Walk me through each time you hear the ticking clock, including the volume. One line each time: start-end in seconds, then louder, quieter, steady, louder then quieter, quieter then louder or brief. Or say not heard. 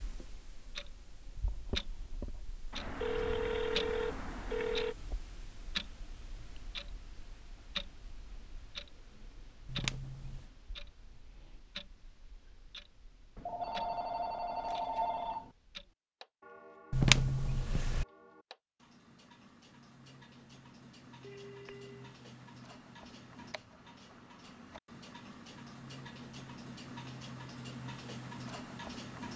0.0-29.3 quieter then louder.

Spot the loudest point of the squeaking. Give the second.
17 s.